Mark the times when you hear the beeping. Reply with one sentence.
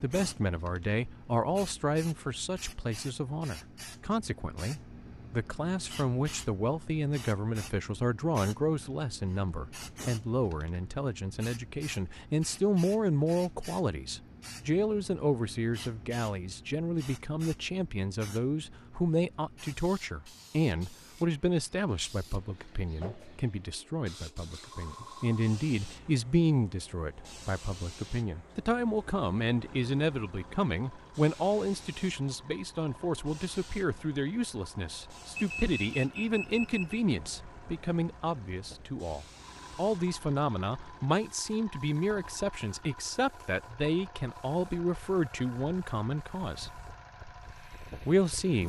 The beeping can be heard from 35.4 to 37.0 s.